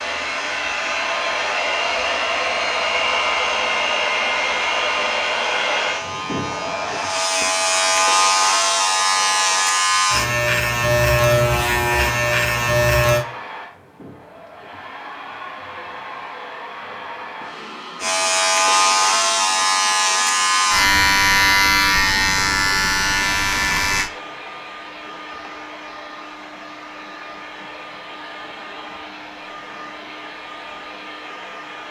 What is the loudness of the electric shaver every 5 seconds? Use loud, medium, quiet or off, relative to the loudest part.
quiet, loud, loud, loud, loud, off, off.